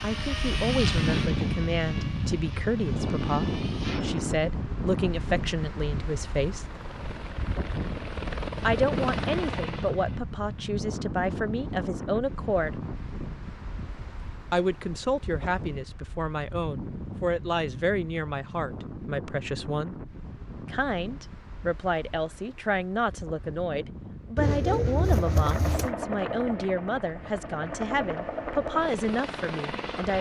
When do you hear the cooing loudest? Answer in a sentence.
The loudest moment of the cooing is at 25 seconds.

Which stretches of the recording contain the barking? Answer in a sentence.
You can't hear the barking here.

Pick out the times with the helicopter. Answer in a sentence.
The helicopter can be heard from 0.0 to 4.2 s, from 6.7 to 10.2 s and from 24.9 to 30.1 s.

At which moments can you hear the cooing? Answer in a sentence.
The cooing can be heard from 24.4 to 25.9 s.